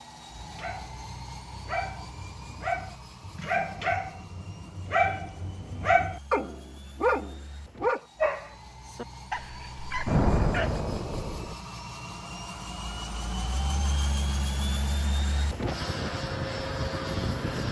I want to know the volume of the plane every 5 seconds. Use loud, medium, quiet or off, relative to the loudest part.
quiet, quiet, medium, loud.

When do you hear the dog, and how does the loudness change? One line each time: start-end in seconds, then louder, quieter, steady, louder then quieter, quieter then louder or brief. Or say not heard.
0.5-10.8 louder then quieter.